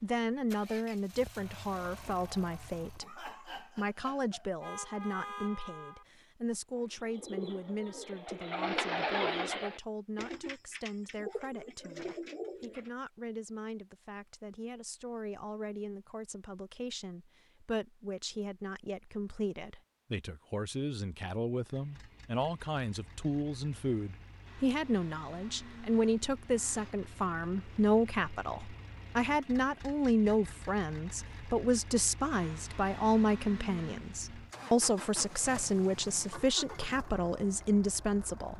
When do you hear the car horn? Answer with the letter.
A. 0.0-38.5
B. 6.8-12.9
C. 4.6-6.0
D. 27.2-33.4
C.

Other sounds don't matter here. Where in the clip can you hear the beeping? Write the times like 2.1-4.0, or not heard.
not heard.